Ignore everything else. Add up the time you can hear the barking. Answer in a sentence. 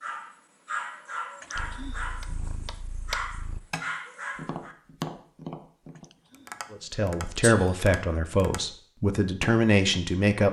The barking can be heard for 5 seconds in total.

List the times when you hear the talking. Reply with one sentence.
You can hear the talking from 6.7 to 10.4 s.